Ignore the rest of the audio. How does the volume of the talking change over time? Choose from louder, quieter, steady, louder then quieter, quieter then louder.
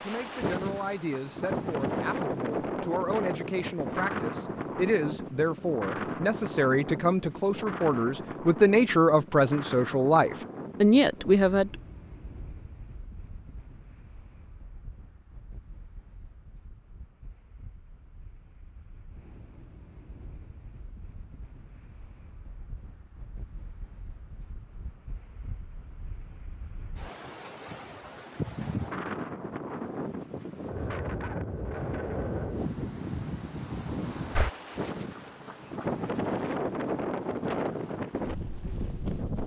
louder.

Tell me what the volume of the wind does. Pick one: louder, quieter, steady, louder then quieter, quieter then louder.
quieter then louder.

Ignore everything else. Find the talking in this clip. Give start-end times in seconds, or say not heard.
0.0-11.8.